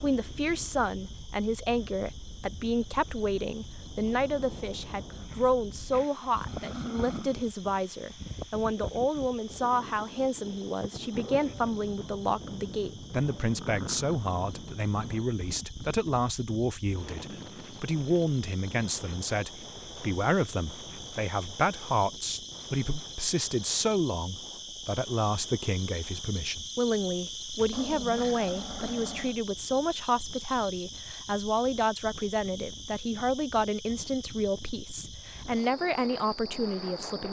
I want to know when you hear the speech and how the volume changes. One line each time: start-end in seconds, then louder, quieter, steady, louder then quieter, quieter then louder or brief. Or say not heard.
0.0-37.2 steady.